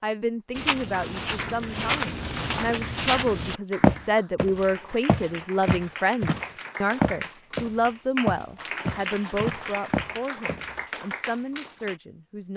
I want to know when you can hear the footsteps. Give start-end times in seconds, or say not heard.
0.6-10.8.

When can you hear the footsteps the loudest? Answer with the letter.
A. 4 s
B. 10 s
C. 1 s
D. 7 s
A.